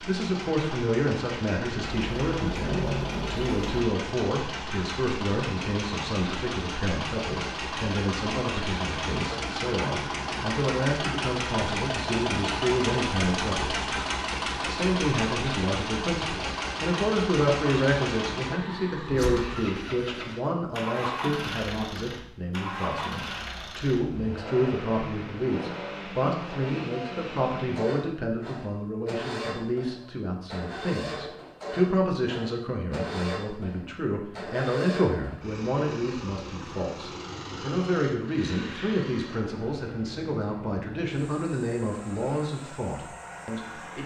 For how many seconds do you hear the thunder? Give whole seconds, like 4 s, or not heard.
2 s.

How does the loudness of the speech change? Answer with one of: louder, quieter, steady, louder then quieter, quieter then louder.
steady.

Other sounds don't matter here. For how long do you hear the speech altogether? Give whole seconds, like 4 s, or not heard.
43 s.